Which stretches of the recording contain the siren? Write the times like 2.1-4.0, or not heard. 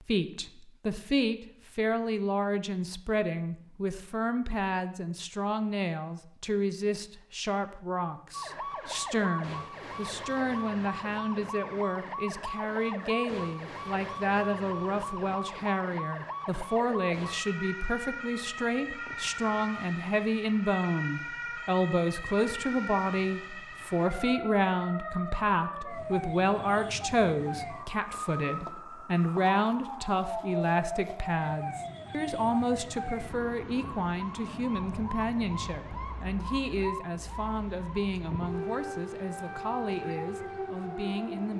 8.3-41.5.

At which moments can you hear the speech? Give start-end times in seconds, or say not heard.
0.1-41.5.